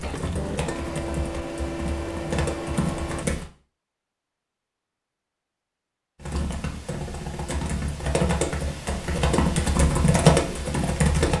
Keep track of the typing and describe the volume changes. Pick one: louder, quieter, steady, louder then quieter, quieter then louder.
louder.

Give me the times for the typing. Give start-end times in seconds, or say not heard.
0.0-3.5, 6.2-11.3.